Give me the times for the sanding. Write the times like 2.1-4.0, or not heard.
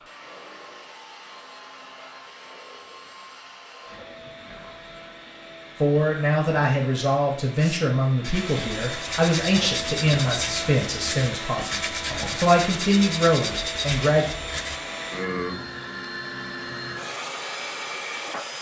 7.6-14.8.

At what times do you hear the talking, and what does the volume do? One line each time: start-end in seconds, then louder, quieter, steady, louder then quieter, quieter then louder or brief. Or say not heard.
5.8-14.2 quieter then louder.